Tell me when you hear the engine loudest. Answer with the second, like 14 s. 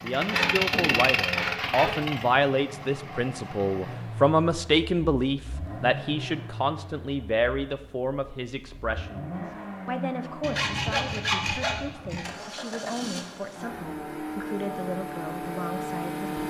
1 s.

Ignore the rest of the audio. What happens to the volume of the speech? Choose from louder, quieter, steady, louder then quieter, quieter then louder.
quieter.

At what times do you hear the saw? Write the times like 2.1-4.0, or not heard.
0.1-2.0, 10.4-12.3.